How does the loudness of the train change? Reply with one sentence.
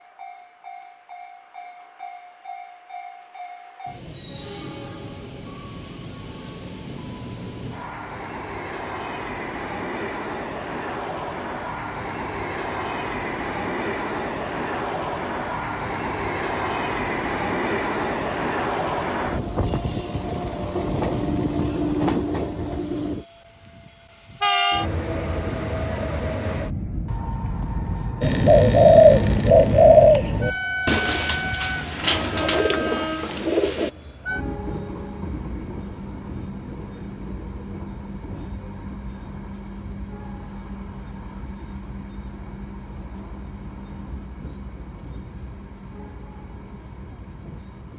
The volume of the train goes up, then down.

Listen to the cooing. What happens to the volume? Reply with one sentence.
The volume of the cooing goes down.